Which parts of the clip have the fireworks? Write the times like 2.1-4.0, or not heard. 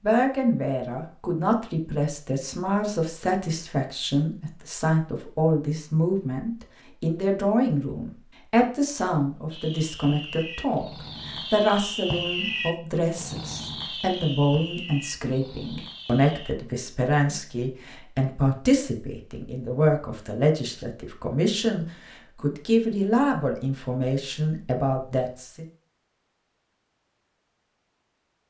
9.5-16.6.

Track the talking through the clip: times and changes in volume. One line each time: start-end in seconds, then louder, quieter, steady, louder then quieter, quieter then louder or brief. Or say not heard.
0.0-25.6 steady.